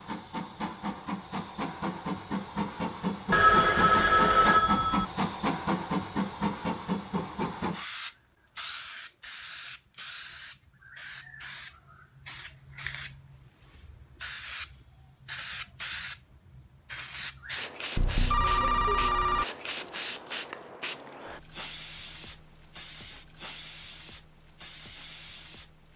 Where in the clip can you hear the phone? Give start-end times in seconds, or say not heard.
3.3-5.0, 17.9-19.4.